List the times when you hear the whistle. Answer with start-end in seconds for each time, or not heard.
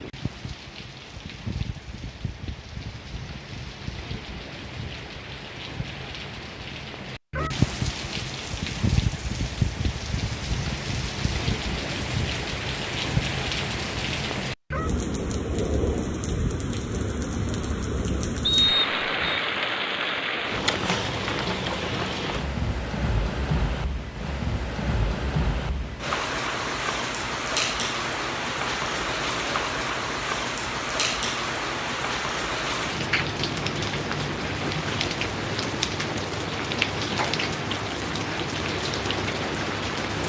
18.4-19.4.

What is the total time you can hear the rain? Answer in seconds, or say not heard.
40 s.